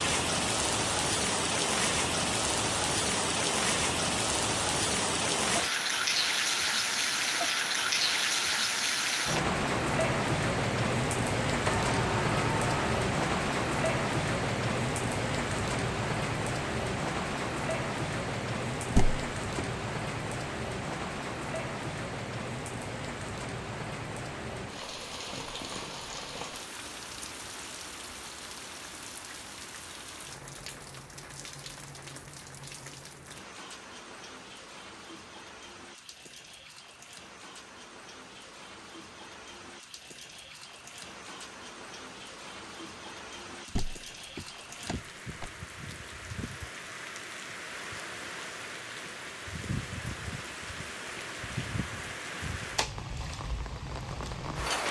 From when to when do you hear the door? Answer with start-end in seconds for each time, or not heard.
11.7-12.8, 18.9-19.6, 43.6-45.5.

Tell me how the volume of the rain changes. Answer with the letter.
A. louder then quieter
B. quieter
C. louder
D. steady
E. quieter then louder
E.